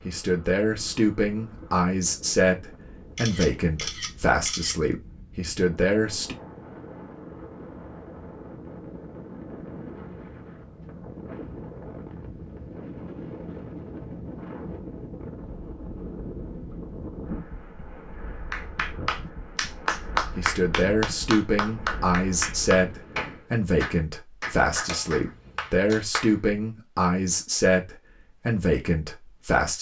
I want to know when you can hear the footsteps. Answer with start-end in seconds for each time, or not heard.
not heard.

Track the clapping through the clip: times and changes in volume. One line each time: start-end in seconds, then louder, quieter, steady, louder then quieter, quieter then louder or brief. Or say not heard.
18.5-26.5 quieter.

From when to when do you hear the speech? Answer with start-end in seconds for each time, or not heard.
0.1-6.3, 20.4-29.7.